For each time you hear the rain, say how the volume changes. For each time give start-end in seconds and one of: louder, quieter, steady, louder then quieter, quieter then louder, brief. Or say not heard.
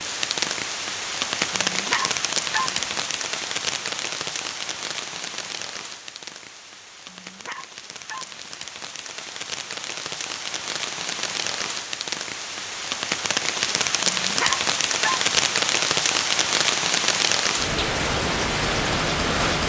0.0-19.6 quieter then louder.